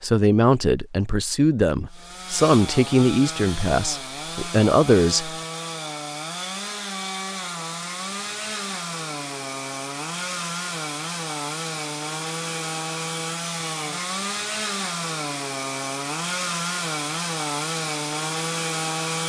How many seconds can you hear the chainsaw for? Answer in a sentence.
The chainsaw can be heard for 17 seconds in total.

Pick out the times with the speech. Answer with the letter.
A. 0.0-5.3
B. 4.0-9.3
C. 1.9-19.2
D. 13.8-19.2
A.